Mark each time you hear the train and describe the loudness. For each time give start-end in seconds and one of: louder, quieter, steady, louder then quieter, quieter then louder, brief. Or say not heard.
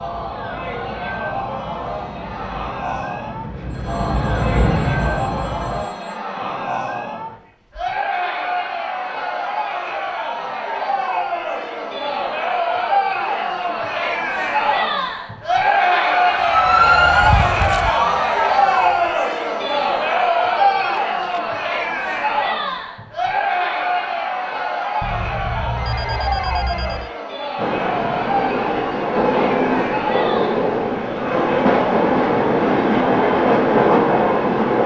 0.0-5.9 louder
27.6-34.8 louder.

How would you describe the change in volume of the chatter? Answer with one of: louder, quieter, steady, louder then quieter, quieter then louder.
louder then quieter.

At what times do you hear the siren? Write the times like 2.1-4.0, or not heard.
16.3-18.9.